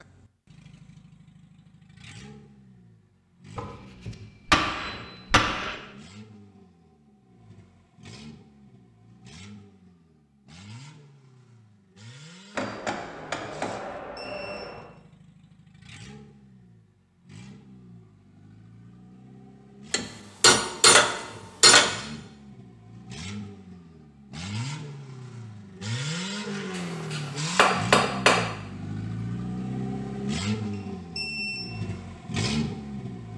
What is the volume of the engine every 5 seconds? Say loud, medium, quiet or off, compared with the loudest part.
quiet, quiet, quiet, quiet, medium, loud, loud.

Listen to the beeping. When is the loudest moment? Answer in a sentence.
The volume of the beeping peaks at 31 seconds.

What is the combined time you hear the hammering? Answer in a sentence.
You can hear the hammering for 8 seconds altogether.